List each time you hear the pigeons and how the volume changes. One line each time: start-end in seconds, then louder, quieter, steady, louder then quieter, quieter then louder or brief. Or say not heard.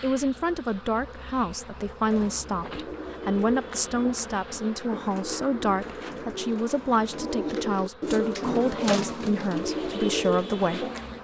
2.0-11.1 louder.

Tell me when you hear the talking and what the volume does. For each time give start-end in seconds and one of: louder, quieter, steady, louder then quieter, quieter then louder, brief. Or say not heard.
0.0-10.9 steady.